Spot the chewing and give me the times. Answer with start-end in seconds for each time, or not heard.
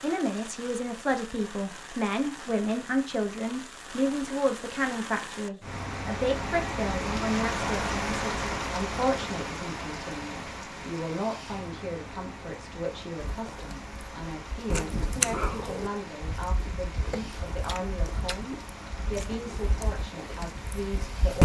13.2-21.3.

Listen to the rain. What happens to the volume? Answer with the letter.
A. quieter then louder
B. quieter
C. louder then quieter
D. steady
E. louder
C.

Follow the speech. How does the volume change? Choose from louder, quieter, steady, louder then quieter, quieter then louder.
quieter.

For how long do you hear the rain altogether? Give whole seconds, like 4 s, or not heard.
21 s.